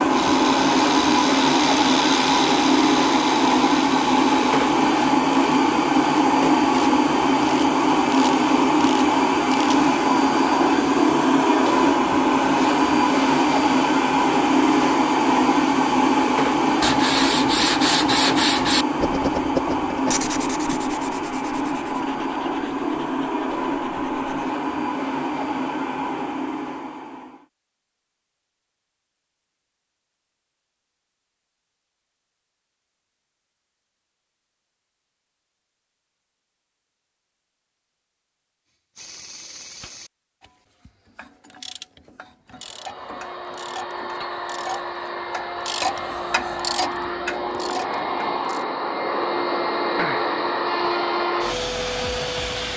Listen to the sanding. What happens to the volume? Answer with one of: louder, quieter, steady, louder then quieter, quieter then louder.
quieter.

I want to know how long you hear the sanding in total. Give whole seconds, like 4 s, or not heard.
8 s.